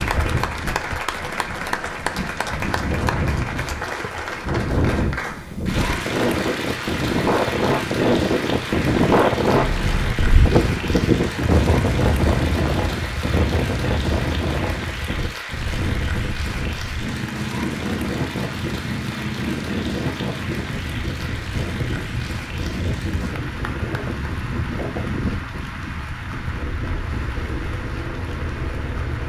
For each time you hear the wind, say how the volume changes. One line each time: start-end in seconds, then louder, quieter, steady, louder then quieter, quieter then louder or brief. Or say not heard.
0.0-29.2 louder then quieter.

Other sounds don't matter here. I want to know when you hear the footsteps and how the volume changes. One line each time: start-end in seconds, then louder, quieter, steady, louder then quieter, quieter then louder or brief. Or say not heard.
not heard.